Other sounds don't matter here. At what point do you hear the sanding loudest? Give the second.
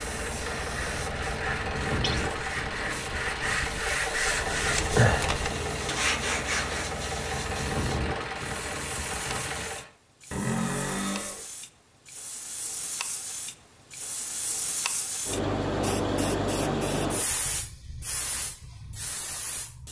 5 s.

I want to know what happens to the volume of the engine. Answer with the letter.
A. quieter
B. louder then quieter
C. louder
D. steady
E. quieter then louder
D.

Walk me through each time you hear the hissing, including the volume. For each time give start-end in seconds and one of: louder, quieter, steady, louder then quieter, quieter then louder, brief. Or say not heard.
0.0-19.8 louder.